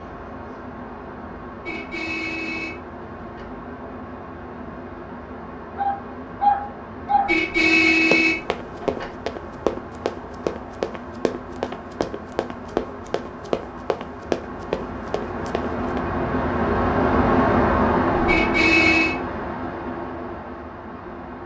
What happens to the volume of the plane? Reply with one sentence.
The loudness of the plane goes up.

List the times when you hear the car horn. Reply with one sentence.
The car horn can be heard from 1.6 to 3.5 s, from 7.2 to 9.1 s and from 18.2 to 19.1 s.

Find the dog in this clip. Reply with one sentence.
You can hear the dog from 5.8 to 7.3 s.